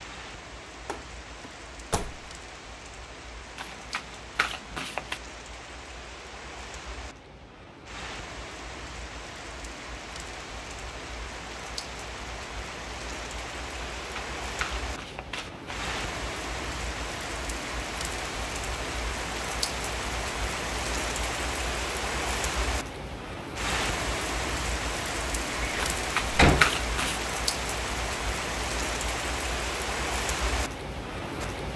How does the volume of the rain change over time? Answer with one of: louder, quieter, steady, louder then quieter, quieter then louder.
louder.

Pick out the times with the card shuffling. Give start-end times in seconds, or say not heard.
3.5-5.2, 13.9-15.8, 25.8-27.2.